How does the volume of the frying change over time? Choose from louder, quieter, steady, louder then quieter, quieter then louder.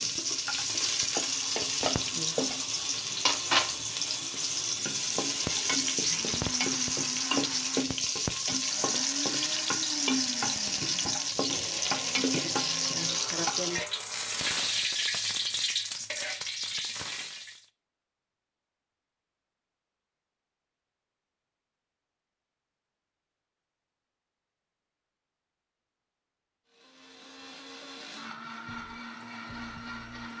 steady.